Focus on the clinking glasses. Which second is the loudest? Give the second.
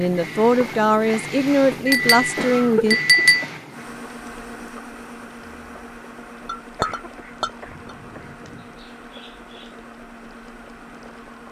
3 s.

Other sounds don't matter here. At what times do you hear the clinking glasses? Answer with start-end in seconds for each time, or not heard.
1.9-3.5, 6.5-7.5.